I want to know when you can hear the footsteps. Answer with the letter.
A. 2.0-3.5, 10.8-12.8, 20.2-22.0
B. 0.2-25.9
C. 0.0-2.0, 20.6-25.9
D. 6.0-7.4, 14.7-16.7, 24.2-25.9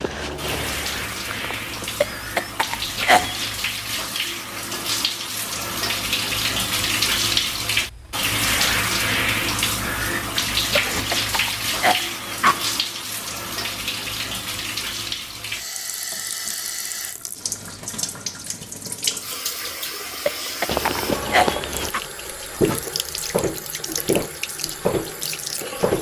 C.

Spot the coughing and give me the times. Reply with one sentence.
You can hear the coughing from 2.0 to 3.5 s, from 10.8 to 12.8 s and from 20.2 to 22.0 s.